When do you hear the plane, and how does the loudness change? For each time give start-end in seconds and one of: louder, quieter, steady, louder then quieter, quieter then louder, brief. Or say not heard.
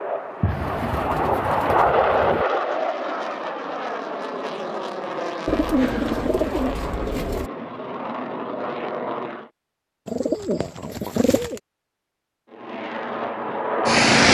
0.0-9.5 quieter
12.4-14.2 brief.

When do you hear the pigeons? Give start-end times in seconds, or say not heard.
0.4-2.5, 5.5-7.5, 10.1-11.6.